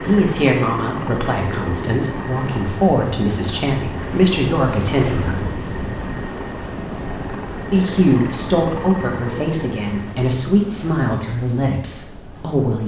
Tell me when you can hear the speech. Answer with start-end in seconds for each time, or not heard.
0.1-5.4, 7.7-12.8.